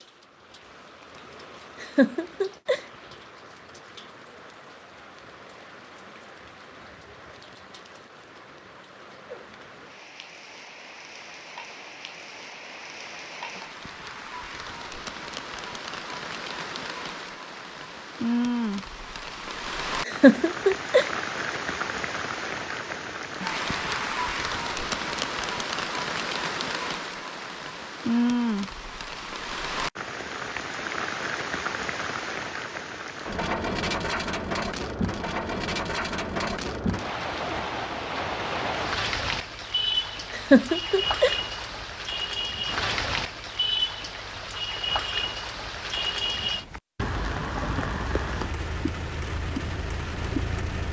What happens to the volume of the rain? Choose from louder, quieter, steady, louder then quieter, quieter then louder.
louder.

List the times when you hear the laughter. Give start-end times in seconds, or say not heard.
1.8-2.8, 20.1-21.1, 40.3-41.4.